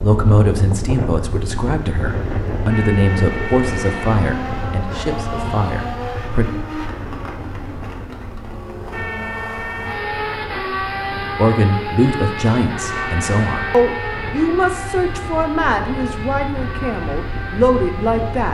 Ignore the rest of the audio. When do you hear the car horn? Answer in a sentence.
You can hear the car horn from 2.7 to 4.2 s, from 8.9 to 10.3 s and from 12.9 to 14.4 s.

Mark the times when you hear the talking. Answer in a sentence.
The talking can be heard from 0.0 to 6.5 s and from 11.3 to 18.4 s.